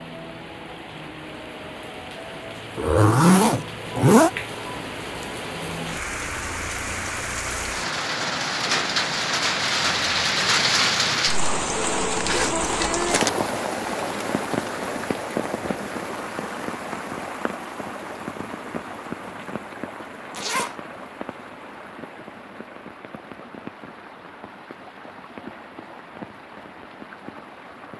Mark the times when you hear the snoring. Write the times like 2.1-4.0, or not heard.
not heard.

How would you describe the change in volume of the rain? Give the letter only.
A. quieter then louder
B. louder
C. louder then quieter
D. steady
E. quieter
C.